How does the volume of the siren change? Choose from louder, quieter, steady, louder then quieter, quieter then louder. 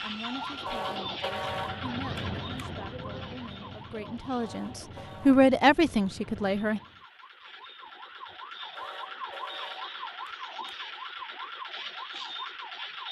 quieter then louder.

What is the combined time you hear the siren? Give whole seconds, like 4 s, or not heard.
13 s.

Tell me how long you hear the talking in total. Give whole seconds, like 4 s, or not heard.
7 s.